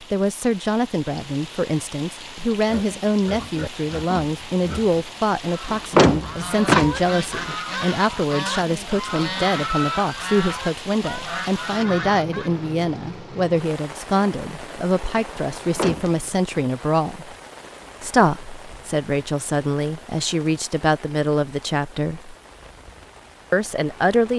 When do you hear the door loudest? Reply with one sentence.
The loudest moment of the door is at 6 seconds.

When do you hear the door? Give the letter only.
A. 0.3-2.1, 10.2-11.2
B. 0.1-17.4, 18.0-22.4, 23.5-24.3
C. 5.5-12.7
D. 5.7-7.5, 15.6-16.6
D.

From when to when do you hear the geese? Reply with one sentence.
The geese can be heard from 5.5 to 12.7 s.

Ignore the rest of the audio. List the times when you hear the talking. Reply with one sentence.
The talking can be heard from 0.1 to 17.4 s, from 18.0 to 22.4 s and from 23.5 to 24.3 s.